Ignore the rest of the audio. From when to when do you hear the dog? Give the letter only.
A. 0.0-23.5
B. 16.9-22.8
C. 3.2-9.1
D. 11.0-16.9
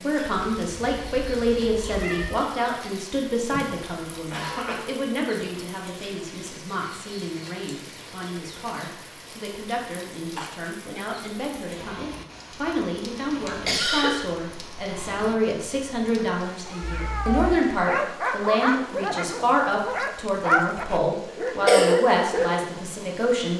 B.